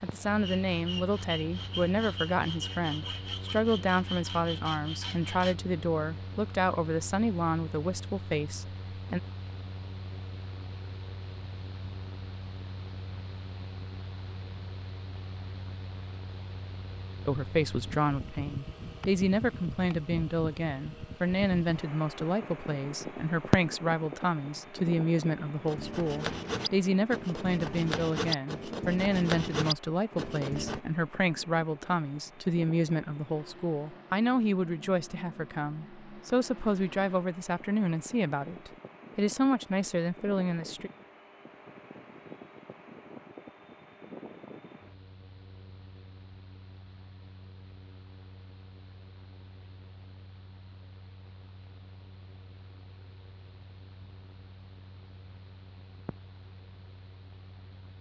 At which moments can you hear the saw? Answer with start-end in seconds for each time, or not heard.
0.4-5.5, 25.6-30.8.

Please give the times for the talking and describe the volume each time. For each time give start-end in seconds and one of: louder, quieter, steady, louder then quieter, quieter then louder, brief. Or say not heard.
0.0-9.2 steady
17.2-40.9 steady.